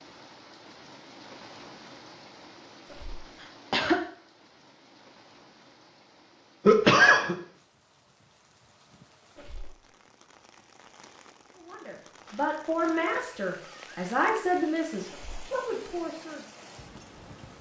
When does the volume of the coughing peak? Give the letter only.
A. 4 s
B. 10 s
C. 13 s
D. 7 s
D.